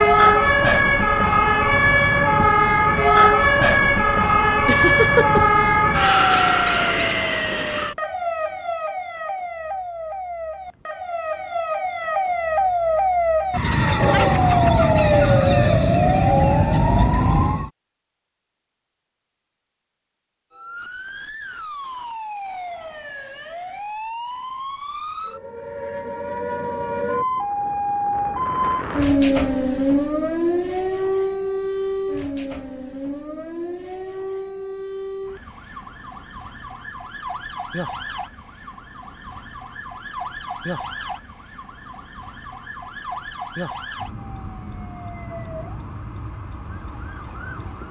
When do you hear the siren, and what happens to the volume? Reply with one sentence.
You can hear the siren from 0.0 to 17.7 s, getting quieter then louder; and from 20.5 to 47.8 s, getting louder then quieter.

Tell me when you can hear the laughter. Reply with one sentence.
You can hear the laughter from 4.7 to 5.7 s.